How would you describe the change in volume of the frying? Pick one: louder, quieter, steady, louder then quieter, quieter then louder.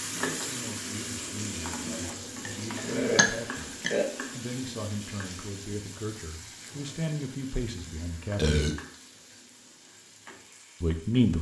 quieter.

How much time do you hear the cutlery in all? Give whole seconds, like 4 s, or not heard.
not heard.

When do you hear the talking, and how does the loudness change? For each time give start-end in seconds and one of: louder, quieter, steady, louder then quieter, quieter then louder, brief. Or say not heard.
0.0-8.6 louder
10.8-11.3 brief.